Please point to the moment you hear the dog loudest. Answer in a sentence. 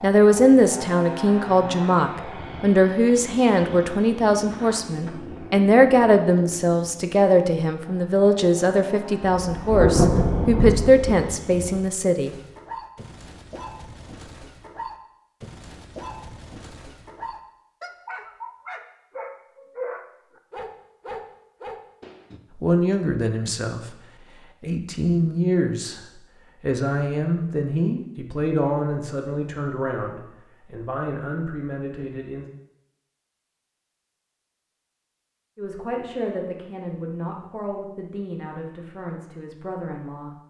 The loudest moment of the dog is at 20 seconds.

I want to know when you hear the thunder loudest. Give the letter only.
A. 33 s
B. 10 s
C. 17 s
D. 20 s
B.